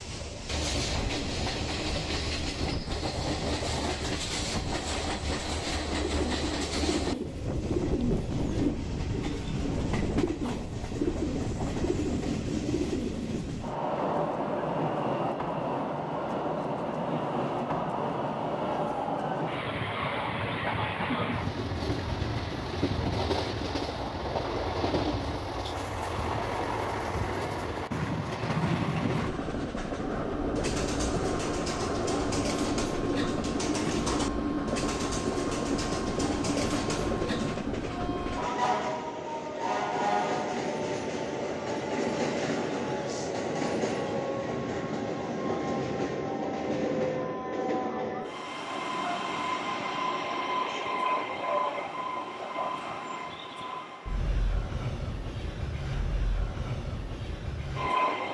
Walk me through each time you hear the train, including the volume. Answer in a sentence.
You can hear the train from 0.0 to 58.2 s, at a steady volume.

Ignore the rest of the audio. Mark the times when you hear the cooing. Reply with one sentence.
The cooing can be heard from 6.0 to 13.4 s and from 30.6 to 37.6 s.